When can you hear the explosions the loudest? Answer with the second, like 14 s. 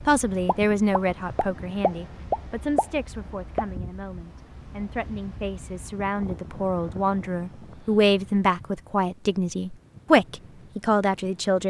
2 s.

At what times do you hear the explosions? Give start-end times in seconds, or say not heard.
0.5-3.6.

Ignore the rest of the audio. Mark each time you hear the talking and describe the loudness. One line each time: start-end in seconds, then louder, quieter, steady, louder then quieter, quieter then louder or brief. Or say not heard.
0.1-11.6 quieter then louder.